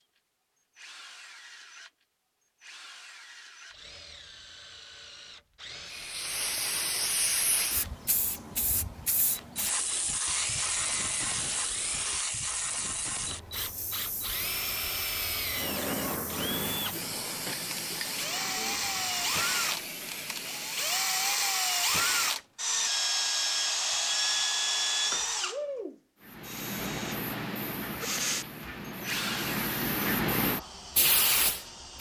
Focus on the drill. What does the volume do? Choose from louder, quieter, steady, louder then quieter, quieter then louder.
louder then quieter.